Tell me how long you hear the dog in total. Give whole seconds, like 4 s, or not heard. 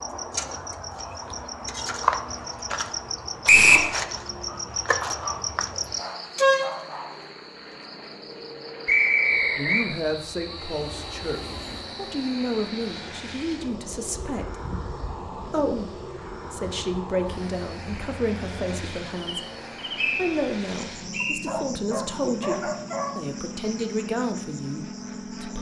5 s.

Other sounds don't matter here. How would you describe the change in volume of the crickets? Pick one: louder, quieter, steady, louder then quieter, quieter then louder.
quieter.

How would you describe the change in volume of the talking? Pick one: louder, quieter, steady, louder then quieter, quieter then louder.
steady.